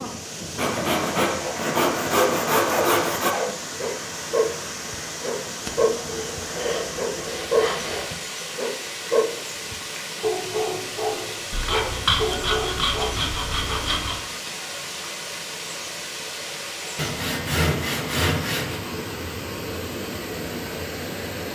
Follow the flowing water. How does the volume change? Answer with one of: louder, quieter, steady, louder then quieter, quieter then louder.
steady.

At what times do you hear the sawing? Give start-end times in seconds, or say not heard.
0.6-3.4, 5.7-8.2, 11.5-14.2, 16.9-18.8.